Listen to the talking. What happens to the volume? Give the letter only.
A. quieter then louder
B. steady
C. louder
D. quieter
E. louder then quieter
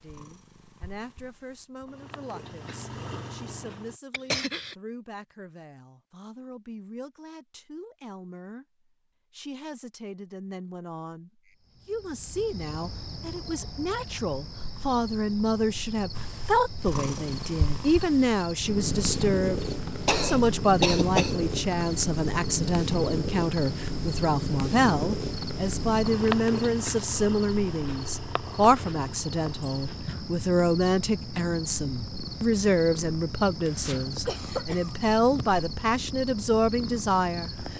C.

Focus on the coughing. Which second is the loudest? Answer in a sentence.
The volume of the coughing peaks at 21 seconds.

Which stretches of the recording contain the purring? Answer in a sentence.
The purring can be heard from 0.0 to 4.0 s and from 16.1 to 37.7 s.